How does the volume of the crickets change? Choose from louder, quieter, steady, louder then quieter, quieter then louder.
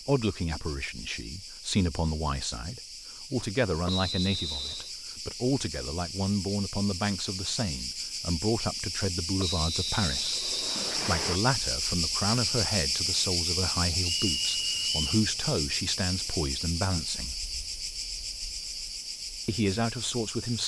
louder then quieter.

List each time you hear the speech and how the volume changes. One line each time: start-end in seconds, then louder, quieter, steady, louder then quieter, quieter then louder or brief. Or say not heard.
0.1-17.4 steady
19.4-20.6 brief.